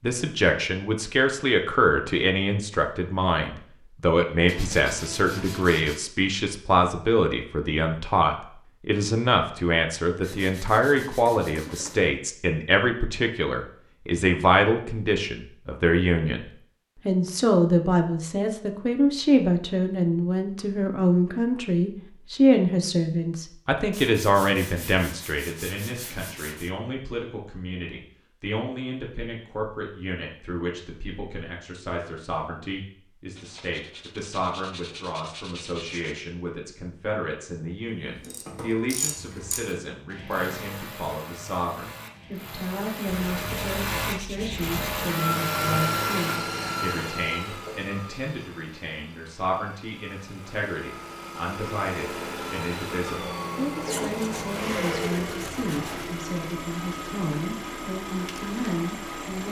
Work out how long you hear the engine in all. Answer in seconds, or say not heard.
14 s.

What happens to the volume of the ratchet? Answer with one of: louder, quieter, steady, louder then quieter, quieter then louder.
quieter then louder.